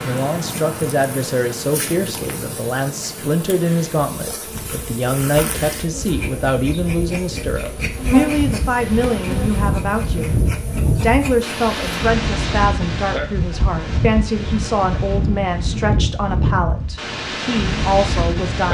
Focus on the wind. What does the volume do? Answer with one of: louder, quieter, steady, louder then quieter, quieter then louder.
louder.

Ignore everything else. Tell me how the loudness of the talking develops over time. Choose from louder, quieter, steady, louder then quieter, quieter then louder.
steady.